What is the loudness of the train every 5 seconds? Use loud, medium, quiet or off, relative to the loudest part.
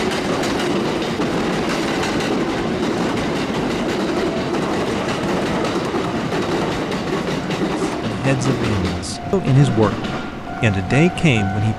loud, loud, medium.